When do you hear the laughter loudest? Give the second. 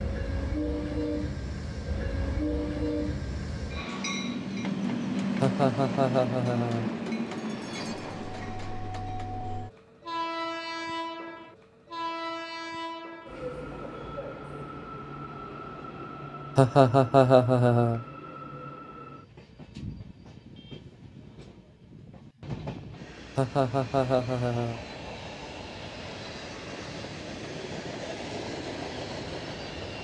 17 s.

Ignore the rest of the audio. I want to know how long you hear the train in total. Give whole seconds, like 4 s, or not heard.
30 s.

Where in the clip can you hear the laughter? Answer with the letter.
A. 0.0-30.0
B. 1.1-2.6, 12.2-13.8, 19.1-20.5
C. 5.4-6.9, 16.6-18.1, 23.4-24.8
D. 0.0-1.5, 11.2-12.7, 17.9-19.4
C.